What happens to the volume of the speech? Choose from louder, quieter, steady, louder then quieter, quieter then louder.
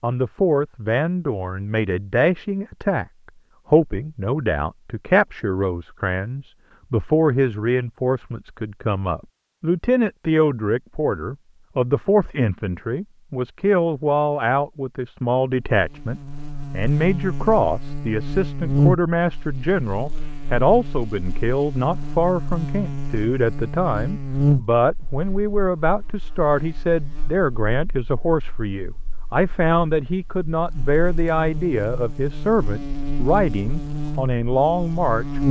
steady.